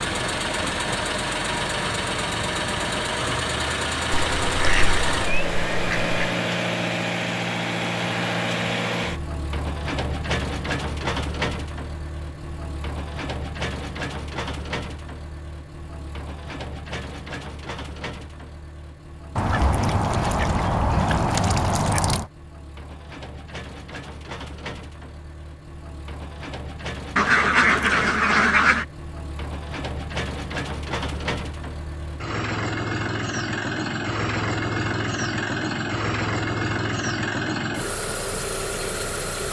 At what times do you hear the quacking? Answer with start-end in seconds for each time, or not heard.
4.1-6.2, 19.4-22.2, 27.1-28.9.